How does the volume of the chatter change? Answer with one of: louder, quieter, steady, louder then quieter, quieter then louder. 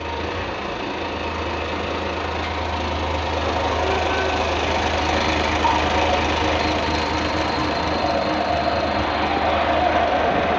louder.